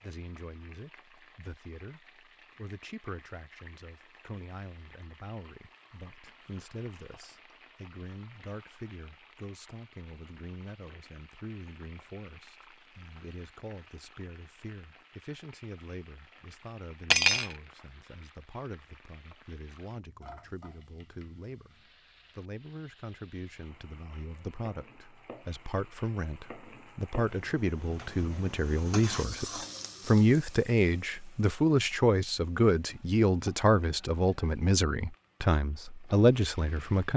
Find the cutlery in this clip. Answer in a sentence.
The cutlery can be heard from 17.1 to 17.6 s.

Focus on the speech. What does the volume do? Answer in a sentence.
The loudness of the speech goes up.